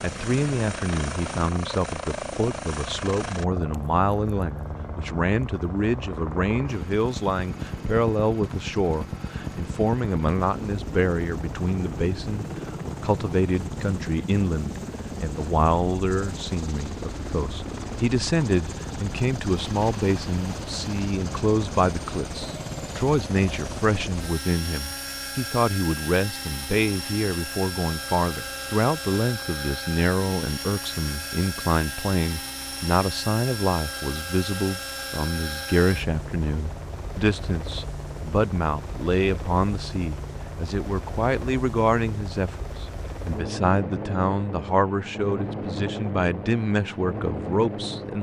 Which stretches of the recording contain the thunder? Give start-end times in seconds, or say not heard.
not heard.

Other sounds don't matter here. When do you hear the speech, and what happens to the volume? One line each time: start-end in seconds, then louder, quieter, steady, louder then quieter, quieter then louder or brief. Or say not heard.
0.0-48.1 steady.